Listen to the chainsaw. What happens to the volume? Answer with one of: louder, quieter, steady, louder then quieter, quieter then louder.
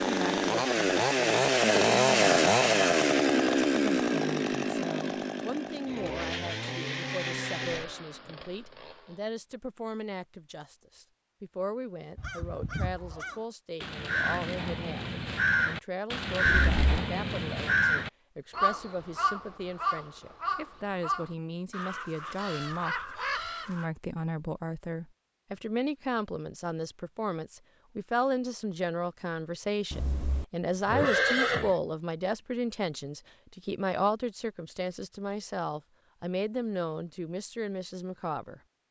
quieter.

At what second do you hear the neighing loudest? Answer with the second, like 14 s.
31 s.